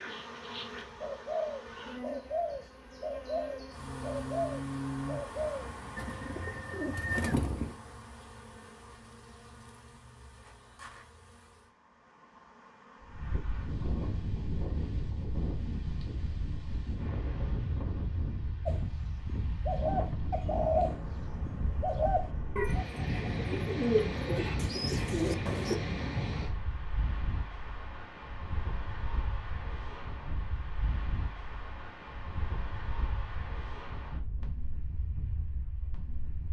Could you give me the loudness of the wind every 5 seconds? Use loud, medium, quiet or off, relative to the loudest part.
off, off, loud, loud, loud, loud, medium, medium.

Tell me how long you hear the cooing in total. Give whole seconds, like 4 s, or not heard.
14 s.